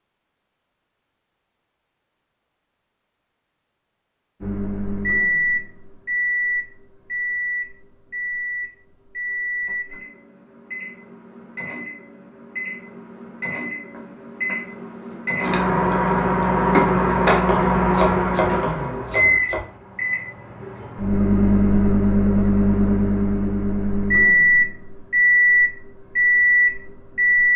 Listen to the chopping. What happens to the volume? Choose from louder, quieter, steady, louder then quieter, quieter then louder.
louder then quieter.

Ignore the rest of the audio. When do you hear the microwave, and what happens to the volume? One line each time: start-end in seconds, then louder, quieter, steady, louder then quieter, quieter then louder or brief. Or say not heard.
4.4-27.5 quieter then louder.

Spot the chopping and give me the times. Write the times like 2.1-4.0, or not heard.
13.9-19.6.